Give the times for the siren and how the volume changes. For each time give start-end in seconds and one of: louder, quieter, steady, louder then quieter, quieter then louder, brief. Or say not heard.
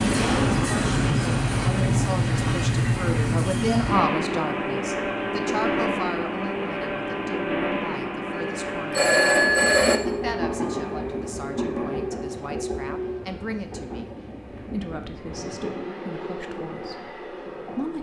not heard.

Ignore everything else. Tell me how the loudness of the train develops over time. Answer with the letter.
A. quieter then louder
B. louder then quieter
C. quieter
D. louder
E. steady
C.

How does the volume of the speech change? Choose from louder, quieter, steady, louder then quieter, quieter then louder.
quieter.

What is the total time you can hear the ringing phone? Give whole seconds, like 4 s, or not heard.
2 s.